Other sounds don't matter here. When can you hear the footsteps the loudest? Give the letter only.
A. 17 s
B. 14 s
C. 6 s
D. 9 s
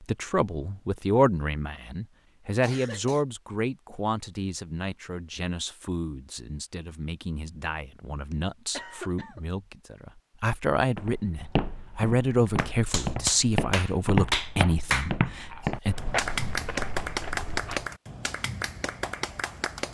B.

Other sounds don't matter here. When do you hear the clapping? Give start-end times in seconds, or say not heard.
12.4-19.9.